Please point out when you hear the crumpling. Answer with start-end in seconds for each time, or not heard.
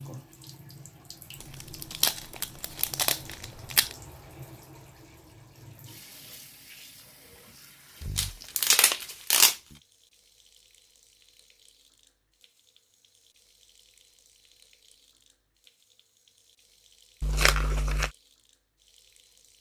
1.4-4.0, 8.0-9.6, 17.2-18.1.